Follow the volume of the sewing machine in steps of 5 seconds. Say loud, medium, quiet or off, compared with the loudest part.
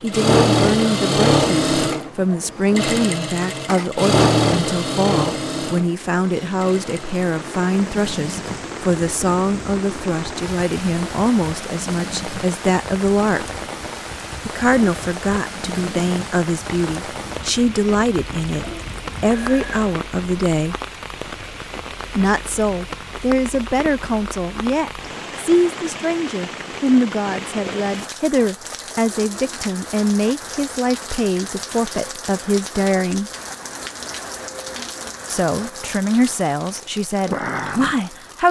loud, medium, quiet, quiet, off, off, off, off.